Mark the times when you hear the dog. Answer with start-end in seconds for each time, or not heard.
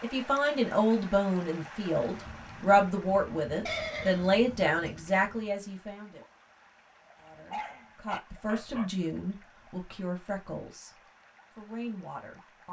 7.2-8.9.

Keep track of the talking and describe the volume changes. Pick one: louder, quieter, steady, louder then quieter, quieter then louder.
quieter.